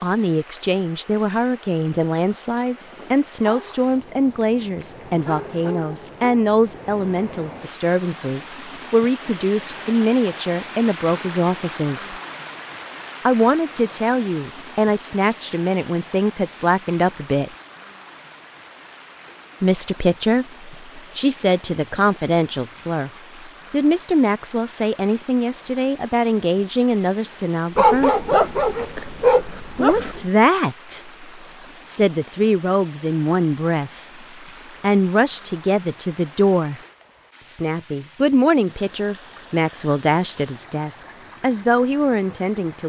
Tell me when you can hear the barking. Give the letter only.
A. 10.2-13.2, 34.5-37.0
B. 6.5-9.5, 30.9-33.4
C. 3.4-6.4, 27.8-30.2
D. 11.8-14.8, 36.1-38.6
C.